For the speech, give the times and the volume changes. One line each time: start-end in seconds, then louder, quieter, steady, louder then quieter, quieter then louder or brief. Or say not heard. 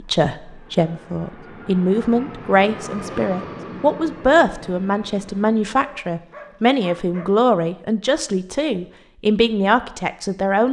0.0-10.6 steady.